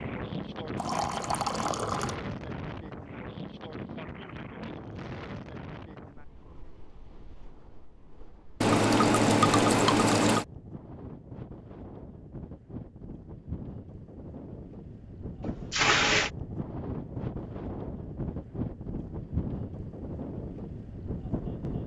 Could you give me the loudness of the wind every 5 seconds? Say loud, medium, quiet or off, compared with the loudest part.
loud, medium, medium, loud, loud.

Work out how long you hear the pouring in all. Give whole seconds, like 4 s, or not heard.
4 s.